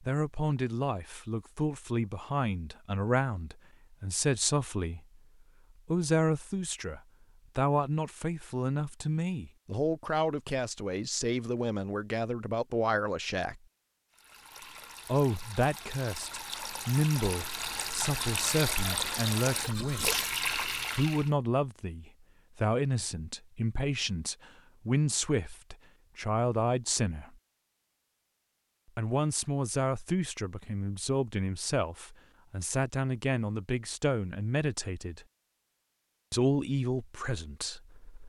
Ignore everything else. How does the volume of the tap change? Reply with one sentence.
The volume of the tap goes up.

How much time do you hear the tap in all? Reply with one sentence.
You can hear the tap for 7 seconds altogether.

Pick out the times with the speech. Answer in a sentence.
You can hear the speech from 0.0 to 5.0 s, from 5.8 to 13.6 s, from 15.1 to 20.2 s, from 20.9 to 27.4 s, from 28.9 to 35.2 s and from 36.3 to 38.2 s.